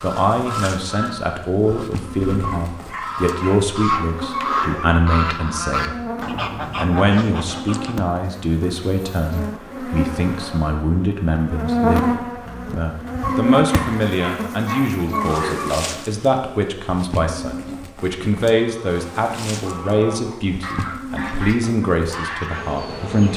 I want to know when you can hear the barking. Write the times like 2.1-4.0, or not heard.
2.4-4.9, 13.2-15.7.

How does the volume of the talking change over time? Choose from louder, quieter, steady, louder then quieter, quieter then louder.
steady.